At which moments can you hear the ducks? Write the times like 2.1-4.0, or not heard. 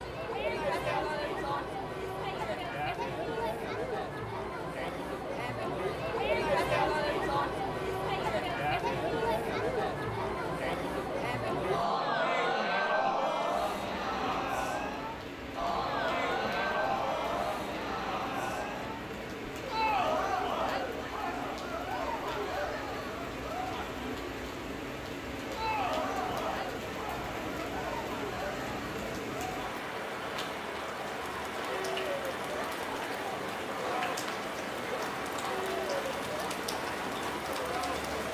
not heard.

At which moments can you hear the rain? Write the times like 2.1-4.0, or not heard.
13.5-38.2.